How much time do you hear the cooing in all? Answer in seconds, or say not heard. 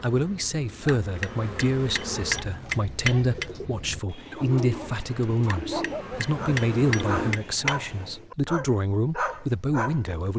6 s.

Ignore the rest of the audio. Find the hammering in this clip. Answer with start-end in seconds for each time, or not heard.
0.8-3.5, 5.5-7.8.